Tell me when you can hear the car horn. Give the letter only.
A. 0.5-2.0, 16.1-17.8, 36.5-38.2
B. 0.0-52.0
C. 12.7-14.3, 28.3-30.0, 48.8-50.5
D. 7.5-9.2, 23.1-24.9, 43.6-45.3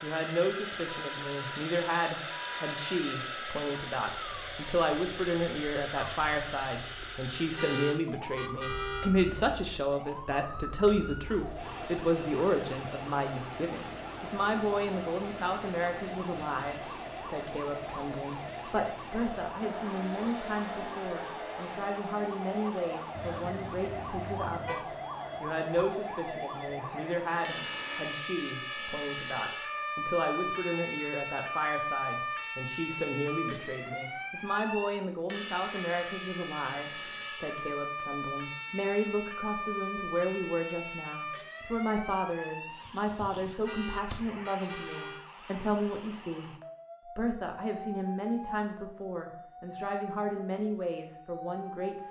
D.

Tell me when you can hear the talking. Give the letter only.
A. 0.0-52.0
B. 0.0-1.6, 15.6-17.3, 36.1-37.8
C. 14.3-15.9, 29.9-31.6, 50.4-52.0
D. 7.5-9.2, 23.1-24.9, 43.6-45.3
A.